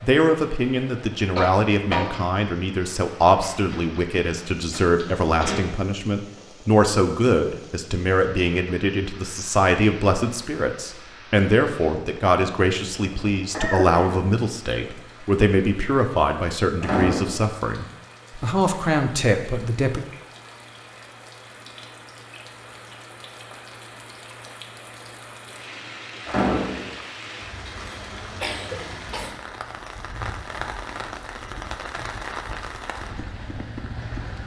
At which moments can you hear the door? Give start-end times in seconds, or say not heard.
3.7-5.7, 16.8-17.4, 26.2-26.9.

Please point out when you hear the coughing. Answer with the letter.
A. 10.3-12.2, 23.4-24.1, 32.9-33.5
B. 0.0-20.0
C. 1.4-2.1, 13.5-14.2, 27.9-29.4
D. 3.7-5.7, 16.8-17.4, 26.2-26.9
C.